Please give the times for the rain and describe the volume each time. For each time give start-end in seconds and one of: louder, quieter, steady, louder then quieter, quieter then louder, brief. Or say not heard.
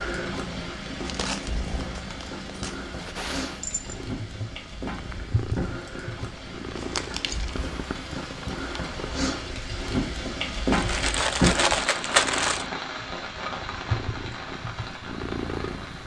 0.0-16.0 louder then quieter.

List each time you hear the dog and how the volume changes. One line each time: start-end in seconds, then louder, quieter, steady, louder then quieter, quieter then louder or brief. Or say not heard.
not heard.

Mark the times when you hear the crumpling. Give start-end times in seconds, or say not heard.
1.1-2.8, 6.8-7.7, 10.7-12.7.